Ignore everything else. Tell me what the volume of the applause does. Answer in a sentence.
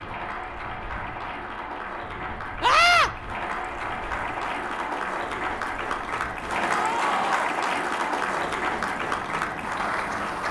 The volume of the applause goes up.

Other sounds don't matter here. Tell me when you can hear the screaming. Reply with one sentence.
The screaming can be heard from 2.6 to 3.1 s and from 6.7 to 7.5 s.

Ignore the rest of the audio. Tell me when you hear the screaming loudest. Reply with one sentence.
The loudest moment of the screaming is at 3 seconds.